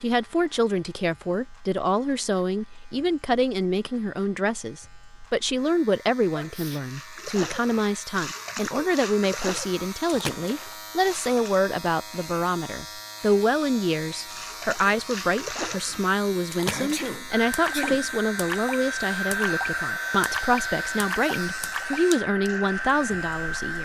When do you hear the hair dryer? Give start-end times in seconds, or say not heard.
17.3-23.7.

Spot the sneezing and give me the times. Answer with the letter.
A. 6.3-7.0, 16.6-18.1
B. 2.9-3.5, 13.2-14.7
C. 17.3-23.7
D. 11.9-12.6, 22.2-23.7
A.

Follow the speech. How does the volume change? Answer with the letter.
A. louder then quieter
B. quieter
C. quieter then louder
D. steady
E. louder
D.